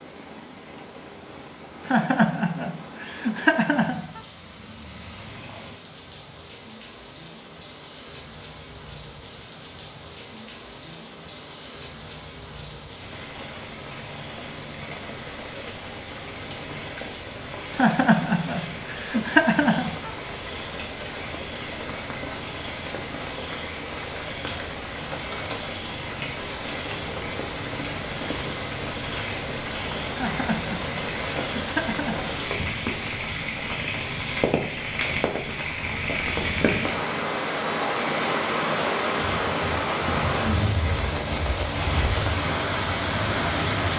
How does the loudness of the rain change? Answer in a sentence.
The loudness of the rain goes up.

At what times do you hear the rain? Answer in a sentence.
You can hear the rain from 0.0 to 43.9 s.